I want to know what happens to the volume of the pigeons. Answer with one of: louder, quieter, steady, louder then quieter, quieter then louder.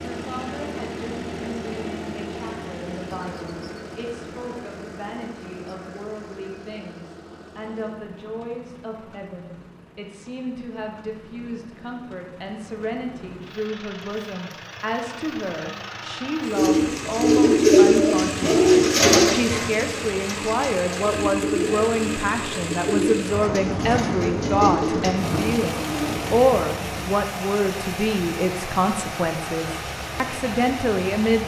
quieter.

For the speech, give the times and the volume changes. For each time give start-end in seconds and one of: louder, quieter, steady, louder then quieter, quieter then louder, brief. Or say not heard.
0.0-31.4 louder.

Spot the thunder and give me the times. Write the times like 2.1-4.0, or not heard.
23.3-27.1.